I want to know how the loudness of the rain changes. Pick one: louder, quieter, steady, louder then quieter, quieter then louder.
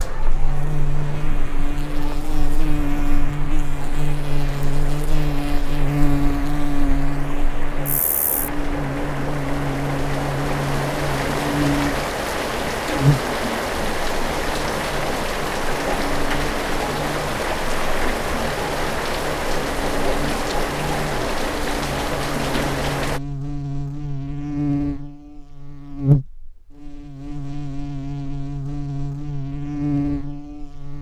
louder.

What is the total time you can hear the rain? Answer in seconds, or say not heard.
23 s.